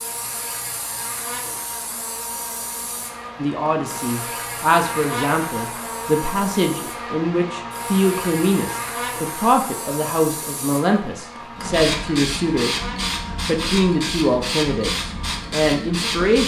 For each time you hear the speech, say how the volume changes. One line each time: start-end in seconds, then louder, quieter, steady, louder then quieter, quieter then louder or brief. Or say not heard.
3.4-12.8 steady
13.4-16.4 brief.